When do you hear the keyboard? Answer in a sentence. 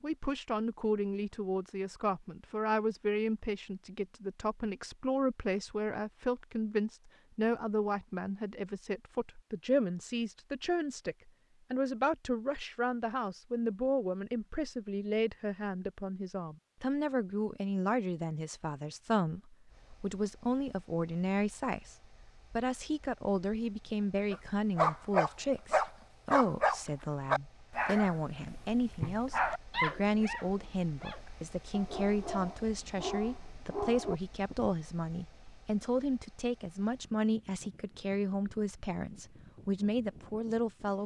You can't hear the keyboard here.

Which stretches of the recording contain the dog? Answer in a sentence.
You can hear the dog from 24.3 to 34.7 s.